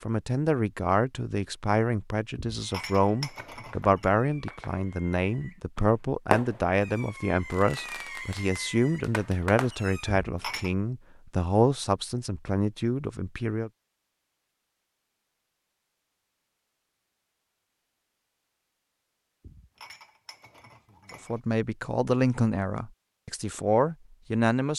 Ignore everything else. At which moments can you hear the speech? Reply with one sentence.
The speech can be heard from 0.0 to 13.7 s and from 21.2 to 24.7 s.